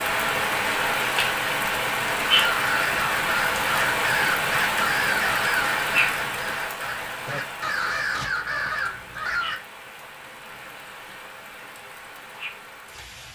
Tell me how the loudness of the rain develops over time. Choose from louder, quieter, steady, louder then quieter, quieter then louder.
quieter.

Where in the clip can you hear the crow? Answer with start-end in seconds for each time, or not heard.
2.3-9.6.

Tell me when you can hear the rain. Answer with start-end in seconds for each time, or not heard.
0.0-13.3.